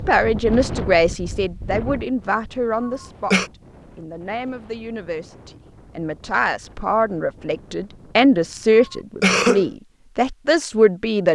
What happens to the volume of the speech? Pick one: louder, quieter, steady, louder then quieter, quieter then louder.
quieter then louder.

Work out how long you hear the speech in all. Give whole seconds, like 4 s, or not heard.
11 s.